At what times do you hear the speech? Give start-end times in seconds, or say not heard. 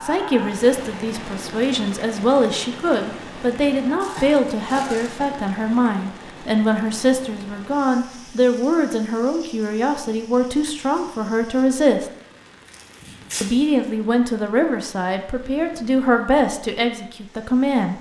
0.0-12.1, 13.4-17.9.